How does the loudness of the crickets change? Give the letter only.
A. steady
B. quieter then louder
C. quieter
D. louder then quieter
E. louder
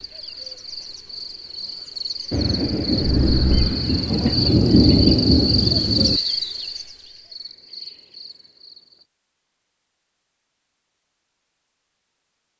D.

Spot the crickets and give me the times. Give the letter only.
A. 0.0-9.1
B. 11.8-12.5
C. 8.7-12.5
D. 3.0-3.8
A.